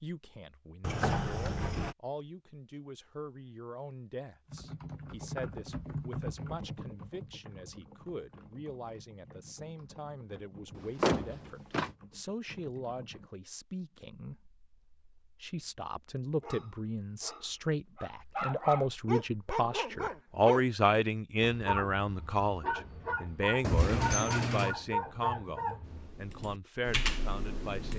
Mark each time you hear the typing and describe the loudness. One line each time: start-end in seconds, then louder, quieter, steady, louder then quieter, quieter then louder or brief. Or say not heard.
4.5-13.3 quieter
25.8-27.9 brief.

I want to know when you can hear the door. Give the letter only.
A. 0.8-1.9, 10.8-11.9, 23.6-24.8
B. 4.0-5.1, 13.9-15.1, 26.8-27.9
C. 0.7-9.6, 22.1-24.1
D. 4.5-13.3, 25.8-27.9
A.